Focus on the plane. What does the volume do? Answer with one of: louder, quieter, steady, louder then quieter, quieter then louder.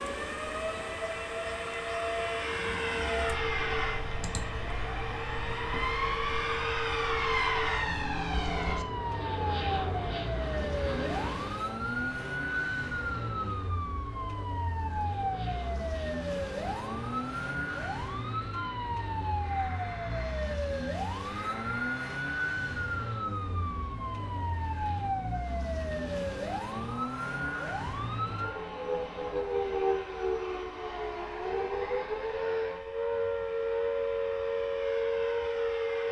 quieter.